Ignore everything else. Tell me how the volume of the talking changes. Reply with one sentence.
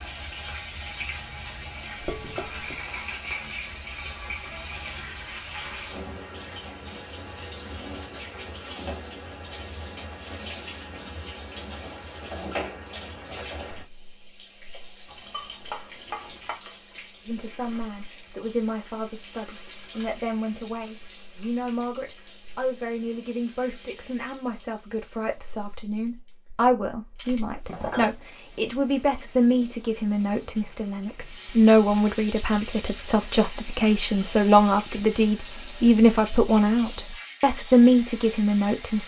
The loudness of the talking goes up.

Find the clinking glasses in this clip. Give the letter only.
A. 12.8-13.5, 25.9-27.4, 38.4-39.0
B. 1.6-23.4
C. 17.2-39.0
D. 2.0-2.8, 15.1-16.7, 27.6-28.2
D.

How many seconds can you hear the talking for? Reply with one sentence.
You can hear the talking for 22 seconds altogether.